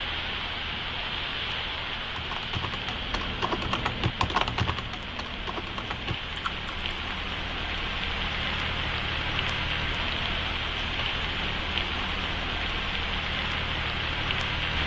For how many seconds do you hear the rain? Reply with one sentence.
You can hear the rain for 15 seconds altogether.